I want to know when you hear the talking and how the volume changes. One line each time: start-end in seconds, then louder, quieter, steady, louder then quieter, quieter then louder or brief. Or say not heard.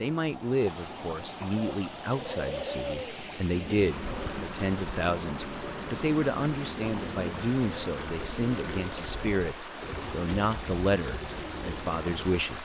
0.0-12.5 steady.